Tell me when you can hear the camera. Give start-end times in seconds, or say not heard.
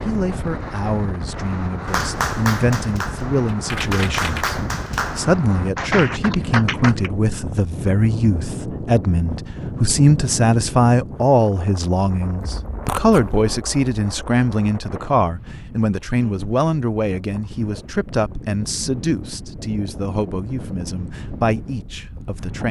3.5-4.5, 12.8-13.5.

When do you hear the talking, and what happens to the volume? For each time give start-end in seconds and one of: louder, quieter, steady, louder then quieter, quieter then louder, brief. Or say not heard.
0.0-22.6 louder then quieter.